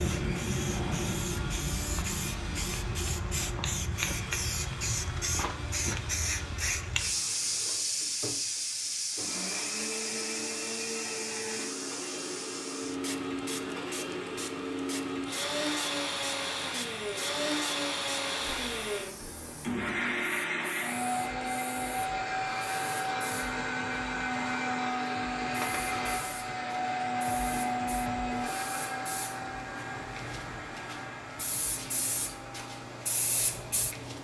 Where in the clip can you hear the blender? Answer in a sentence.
The blender can be heard from 0.0 to 34.2 s.